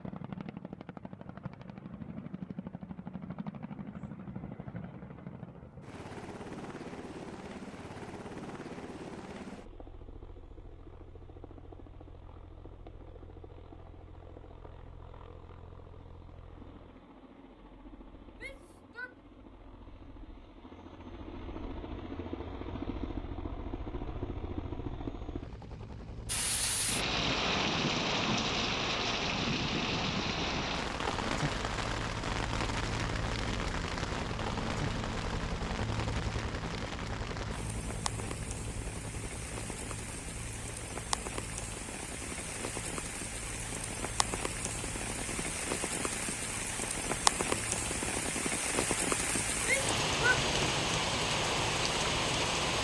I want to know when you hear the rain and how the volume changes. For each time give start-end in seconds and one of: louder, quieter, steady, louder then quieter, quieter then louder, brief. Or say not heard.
26.2-52.7 quieter then louder.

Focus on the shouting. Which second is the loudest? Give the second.
50 s.